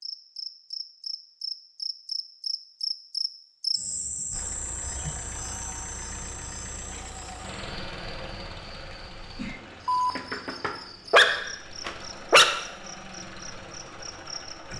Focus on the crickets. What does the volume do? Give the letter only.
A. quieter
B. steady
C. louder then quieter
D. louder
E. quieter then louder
A.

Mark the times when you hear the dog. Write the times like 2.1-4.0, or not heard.
9.8-12.6.